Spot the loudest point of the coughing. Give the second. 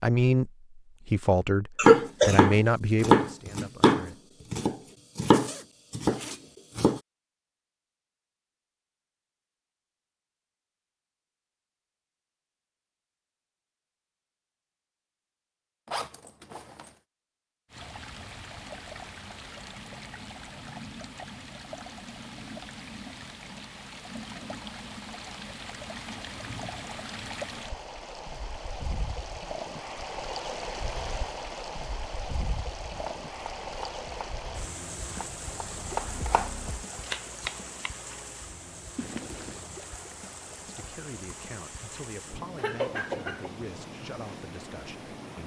2 s.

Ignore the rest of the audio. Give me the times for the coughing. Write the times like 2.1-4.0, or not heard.
1.8-2.4, 42.5-43.5.